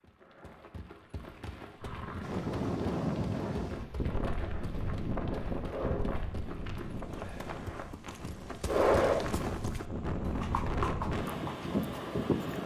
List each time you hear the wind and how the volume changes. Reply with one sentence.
You can hear the wind from 2.2 to 12.6 s, getting quieter then louder.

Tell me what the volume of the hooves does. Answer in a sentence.
The volume of the hooves goes up.